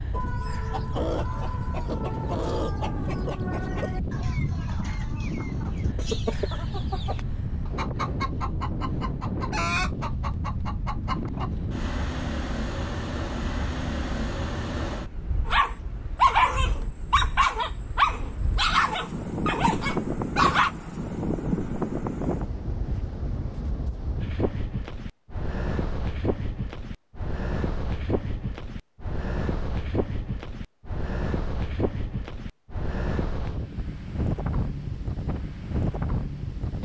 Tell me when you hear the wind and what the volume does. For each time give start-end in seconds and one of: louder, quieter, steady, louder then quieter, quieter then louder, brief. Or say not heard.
0.0-36.7 steady.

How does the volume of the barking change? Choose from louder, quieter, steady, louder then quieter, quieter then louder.
quieter.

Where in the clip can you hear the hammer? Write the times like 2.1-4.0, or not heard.
not heard.